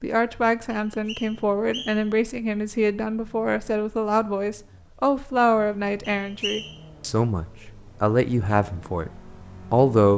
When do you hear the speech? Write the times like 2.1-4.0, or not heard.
0.0-10.1.